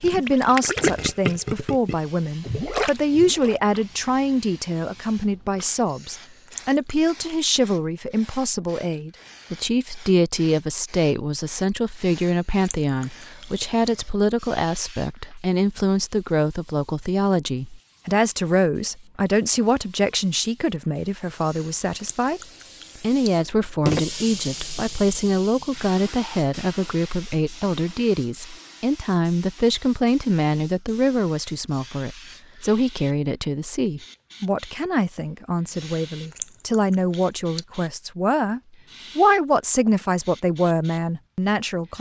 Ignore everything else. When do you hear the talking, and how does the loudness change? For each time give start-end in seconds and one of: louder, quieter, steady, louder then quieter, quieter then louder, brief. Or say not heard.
0.0-41.9 steady.